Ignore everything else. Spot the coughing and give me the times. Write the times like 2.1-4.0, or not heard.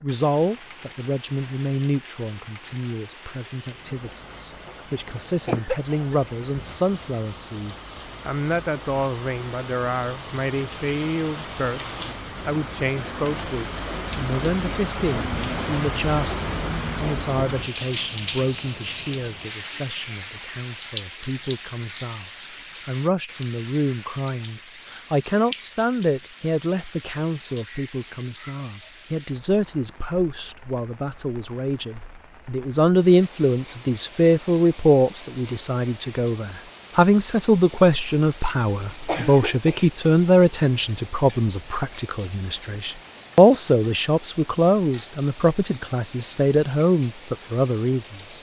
5.5-6.2, 38.9-39.9.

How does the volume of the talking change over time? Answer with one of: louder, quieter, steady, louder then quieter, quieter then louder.
louder.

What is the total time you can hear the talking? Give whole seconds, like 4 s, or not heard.
48 s.